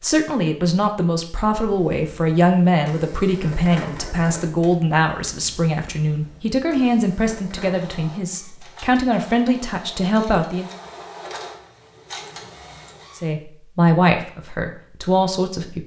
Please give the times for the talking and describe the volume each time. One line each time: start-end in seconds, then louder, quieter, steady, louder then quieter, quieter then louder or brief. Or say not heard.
0.0-10.7 steady
13.2-15.8 brief.